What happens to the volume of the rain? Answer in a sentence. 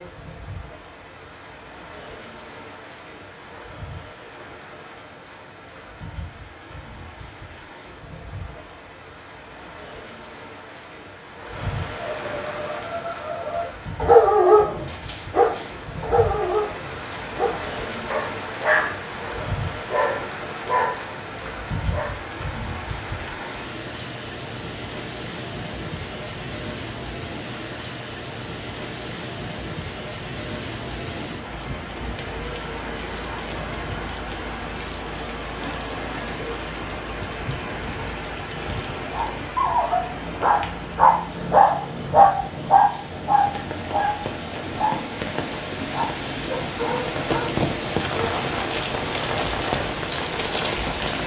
The volume of the rain goes up.